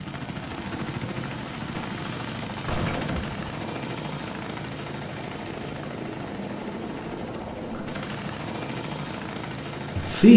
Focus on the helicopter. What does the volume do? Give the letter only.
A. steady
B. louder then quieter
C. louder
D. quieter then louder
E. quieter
A.